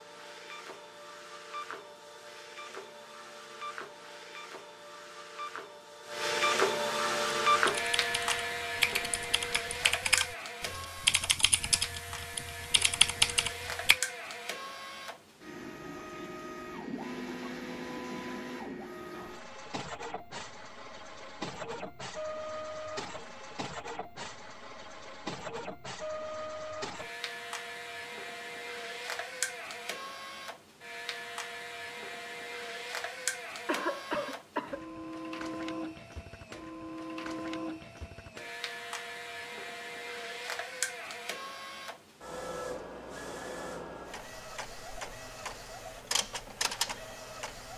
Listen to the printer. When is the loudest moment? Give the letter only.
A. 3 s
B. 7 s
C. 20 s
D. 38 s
B.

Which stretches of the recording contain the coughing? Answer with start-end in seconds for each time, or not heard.
33.6-34.8.